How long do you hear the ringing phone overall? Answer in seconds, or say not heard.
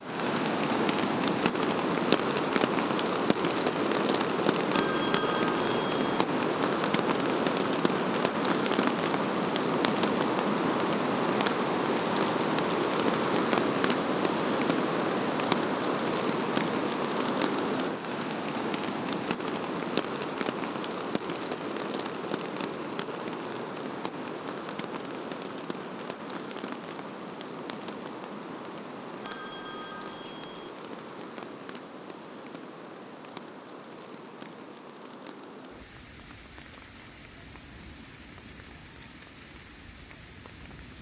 3 s.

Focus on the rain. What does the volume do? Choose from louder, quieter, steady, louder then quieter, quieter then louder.
quieter.